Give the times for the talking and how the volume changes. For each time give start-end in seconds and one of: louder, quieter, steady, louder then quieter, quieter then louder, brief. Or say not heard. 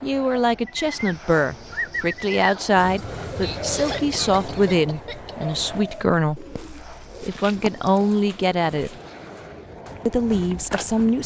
0.0-8.9 steady
10.1-11.2 brief.